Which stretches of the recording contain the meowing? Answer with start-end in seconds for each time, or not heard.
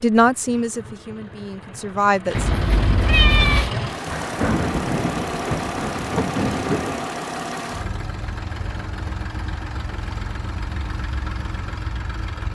2.3-3.7.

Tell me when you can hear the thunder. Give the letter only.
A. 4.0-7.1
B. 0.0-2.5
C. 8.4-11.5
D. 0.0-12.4
A.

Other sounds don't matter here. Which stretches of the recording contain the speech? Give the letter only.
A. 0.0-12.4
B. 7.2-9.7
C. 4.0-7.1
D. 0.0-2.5
D.